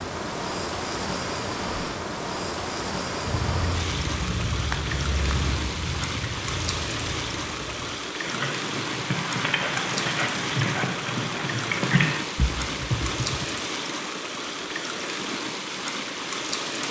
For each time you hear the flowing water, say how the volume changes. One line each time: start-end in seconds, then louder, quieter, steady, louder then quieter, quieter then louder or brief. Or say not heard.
0.0-16.8 steady.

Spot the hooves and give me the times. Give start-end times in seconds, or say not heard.
3.2-13.4.